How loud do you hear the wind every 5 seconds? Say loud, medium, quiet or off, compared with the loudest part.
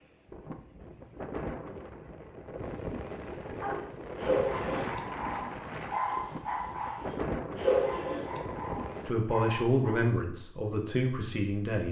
loud, loud, off.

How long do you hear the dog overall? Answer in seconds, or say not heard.
7 s.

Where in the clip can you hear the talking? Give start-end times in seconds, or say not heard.
9.1-11.8.